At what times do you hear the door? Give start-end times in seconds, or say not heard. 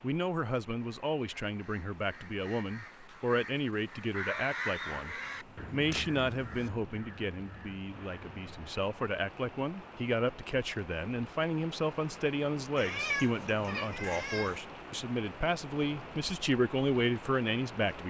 not heard.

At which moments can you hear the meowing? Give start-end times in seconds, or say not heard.
5.0-6.7, 12.8-14.6.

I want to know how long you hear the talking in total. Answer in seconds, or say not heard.
18 s.